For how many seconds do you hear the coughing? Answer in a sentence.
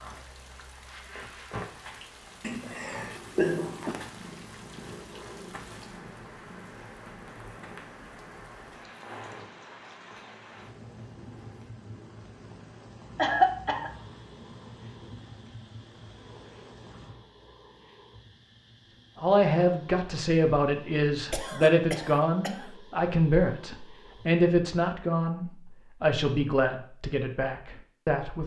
You can hear the coughing for 4 seconds altogether.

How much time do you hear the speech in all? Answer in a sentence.
The speech can be heard for 9 seconds in total.